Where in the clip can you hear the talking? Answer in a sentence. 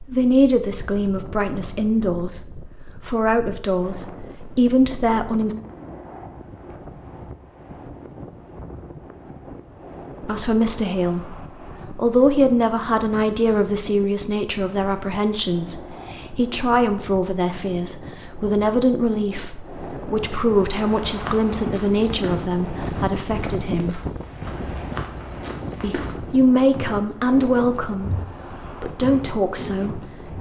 You can hear the talking from 0.0 to 5.5 s, from 10.2 to 24.0 s and from 25.8 to 30.3 s.